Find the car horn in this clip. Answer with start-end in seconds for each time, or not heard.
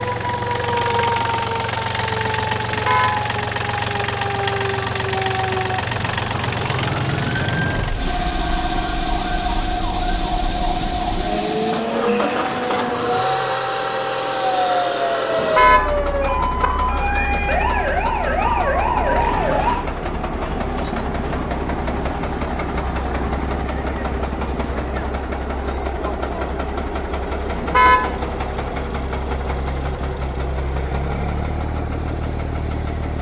2.6-3.1, 15.3-16.7, 27.6-28.1.